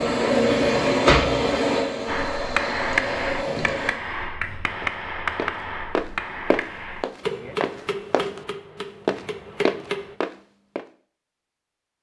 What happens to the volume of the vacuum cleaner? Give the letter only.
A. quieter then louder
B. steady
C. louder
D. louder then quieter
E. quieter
E.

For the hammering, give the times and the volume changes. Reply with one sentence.
The hammering can be heard from 2.0 to 10.2 s, getting quieter.